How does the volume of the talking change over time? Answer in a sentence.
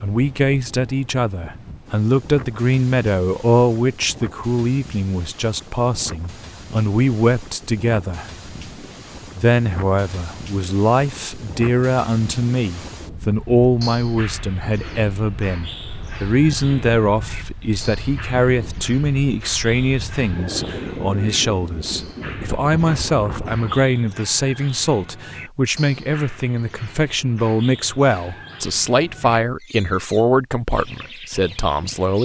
The loudness of the talking stays about the same.